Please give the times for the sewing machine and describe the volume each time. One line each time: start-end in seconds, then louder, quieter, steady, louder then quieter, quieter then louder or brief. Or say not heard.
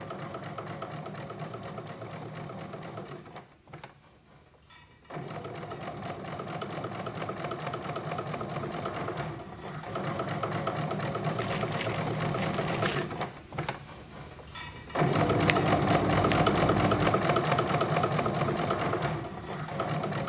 0.0-20.2 louder.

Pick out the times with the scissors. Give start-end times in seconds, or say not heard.
15.1-17.1.